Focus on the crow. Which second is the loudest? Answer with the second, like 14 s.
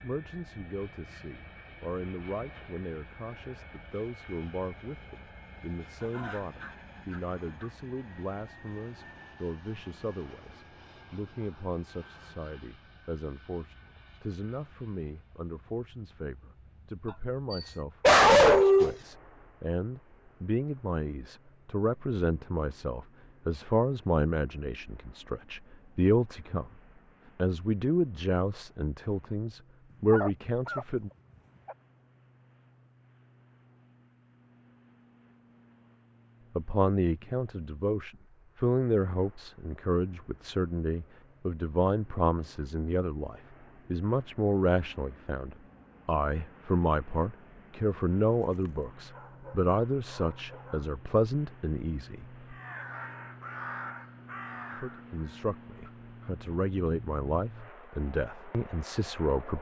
54 s.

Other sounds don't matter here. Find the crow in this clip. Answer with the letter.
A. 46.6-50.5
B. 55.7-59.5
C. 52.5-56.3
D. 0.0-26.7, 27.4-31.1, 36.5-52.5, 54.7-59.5
C.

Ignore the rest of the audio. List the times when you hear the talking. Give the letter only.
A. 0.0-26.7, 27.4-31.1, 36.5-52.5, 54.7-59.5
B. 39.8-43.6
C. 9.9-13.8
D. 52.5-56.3
A.